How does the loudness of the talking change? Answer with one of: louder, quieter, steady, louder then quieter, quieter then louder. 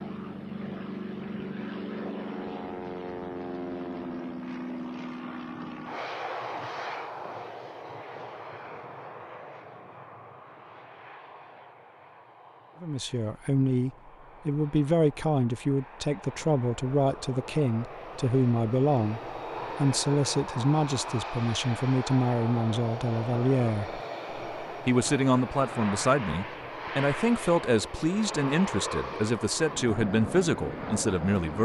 steady.